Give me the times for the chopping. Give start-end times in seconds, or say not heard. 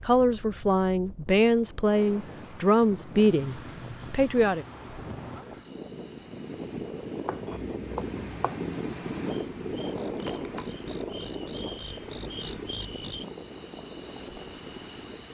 7.2-8.7.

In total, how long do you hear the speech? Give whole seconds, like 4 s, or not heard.
5 s.